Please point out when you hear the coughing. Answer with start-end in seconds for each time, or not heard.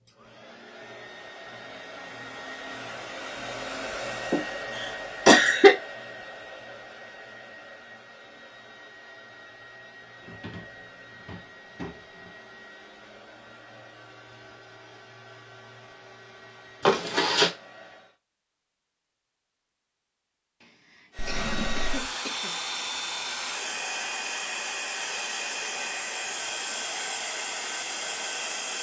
4.3-5.8, 16.9-17.5, 20.6-22.5.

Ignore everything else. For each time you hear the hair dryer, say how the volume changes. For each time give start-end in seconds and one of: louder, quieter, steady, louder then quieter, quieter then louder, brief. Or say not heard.
0.0-18.2 quieter
21.1-28.7 steady.